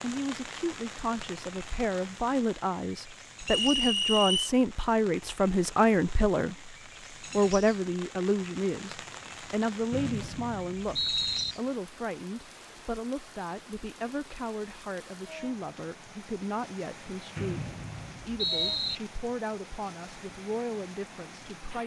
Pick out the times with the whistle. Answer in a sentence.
You can hear the whistle from 3.5 to 4.5 s, from 9.9 to 11.6 s and from 17.4 to 18.9 s.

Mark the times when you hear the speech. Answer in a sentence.
You can hear the speech from 0.0 to 21.8 s.